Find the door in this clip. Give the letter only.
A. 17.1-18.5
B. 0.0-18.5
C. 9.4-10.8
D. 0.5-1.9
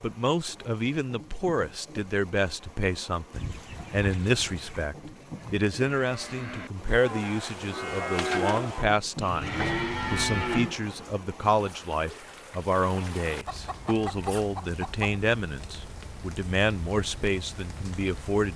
C.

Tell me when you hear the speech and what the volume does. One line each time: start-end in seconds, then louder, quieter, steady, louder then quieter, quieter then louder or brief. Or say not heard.
0.0-18.5 steady.